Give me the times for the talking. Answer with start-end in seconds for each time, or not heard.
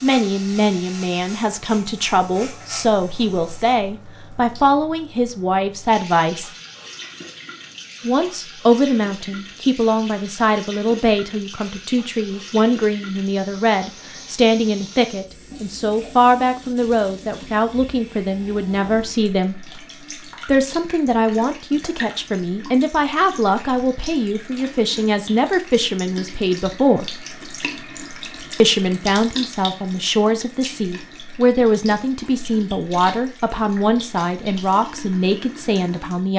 0.0-6.5, 8.0-19.6, 20.4-27.1, 28.6-36.3.